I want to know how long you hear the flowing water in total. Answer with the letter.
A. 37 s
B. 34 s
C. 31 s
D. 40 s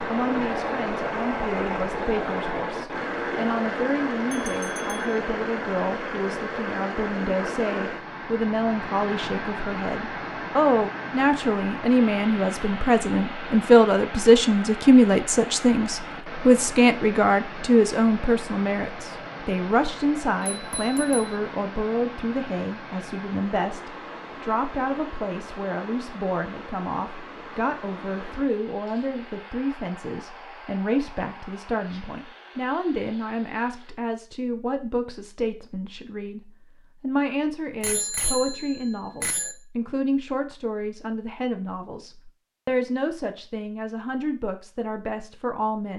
B.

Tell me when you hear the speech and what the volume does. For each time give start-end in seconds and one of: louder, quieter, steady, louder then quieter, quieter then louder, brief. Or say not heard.
0.0-45.9 louder then quieter.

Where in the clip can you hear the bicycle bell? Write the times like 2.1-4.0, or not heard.
4.3-5.2, 20.4-21.3, 37.8-39.5.